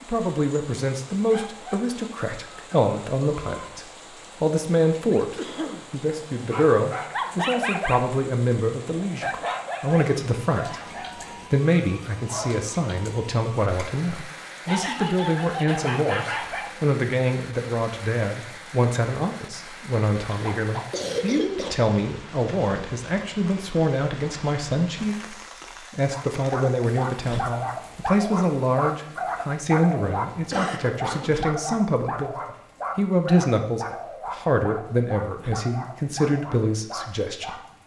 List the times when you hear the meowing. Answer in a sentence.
You can't hear the meowing here.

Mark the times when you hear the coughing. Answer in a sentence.
The coughing can be heard from 5.3 to 5.8 s, from 20.2 to 21.8 s and from 30.1 to 31.4 s.